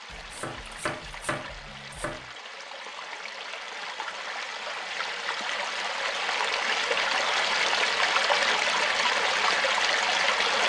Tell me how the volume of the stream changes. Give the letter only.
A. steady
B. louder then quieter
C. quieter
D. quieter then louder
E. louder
E.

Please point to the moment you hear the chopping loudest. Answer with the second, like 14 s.
1 s.